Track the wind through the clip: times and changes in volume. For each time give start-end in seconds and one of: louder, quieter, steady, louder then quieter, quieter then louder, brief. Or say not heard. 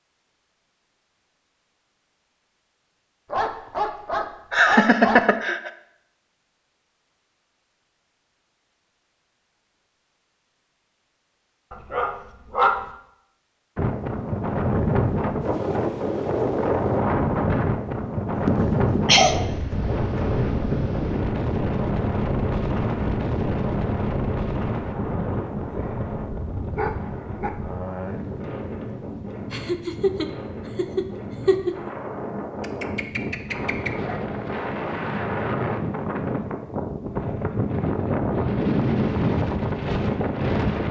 13.8-40.8 quieter then louder.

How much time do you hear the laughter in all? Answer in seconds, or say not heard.
5 s.